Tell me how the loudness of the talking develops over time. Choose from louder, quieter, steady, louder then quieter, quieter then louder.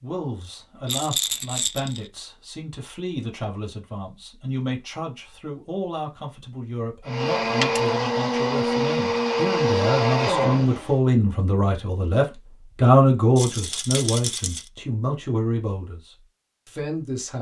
louder then quieter.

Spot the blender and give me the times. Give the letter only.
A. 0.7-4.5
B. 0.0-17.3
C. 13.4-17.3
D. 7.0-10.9
D.